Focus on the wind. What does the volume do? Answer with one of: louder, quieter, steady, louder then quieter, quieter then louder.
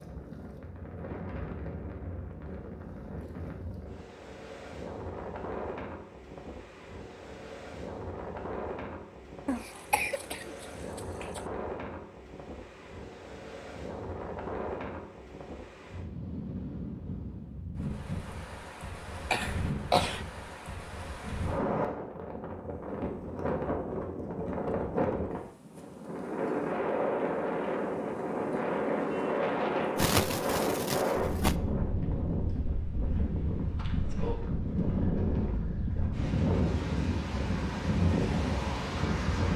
louder.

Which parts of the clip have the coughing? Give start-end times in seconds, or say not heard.
9.4-11.4, 19.3-20.2, 29.9-31.6.